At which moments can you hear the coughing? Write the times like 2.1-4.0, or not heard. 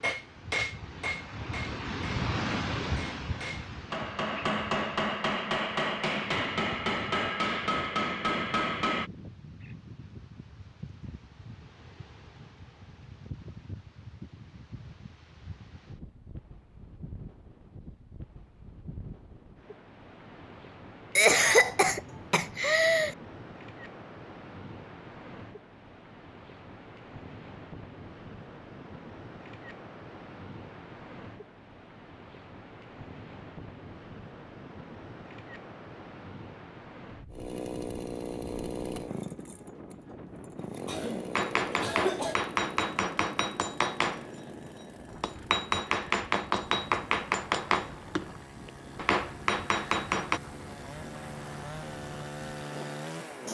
21.1-23.1, 40.9-42.4.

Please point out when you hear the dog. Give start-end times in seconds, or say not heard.
not heard.